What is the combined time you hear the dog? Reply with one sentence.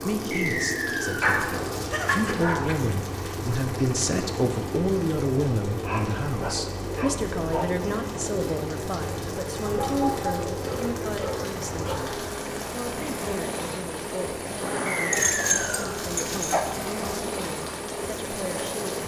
The dog can be heard for 8 seconds in total.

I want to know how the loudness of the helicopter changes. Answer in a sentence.
The loudness of the helicopter stays about the same.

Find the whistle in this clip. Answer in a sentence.
You can hear the whistle from 0.3 to 1.2 s and from 14.8 to 15.9 s.